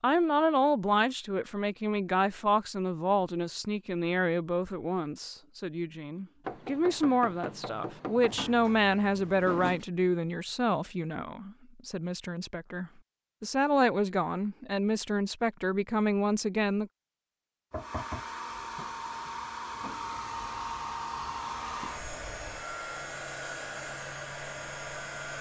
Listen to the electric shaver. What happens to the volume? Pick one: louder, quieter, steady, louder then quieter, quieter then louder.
louder.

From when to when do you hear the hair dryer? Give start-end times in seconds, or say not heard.
17.7-25.3.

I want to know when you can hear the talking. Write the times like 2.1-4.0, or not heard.
0.0-16.9.